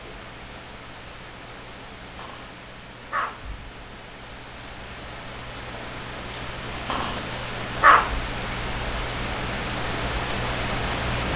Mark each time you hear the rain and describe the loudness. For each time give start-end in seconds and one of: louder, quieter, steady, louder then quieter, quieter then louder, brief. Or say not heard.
0.0-11.3 louder.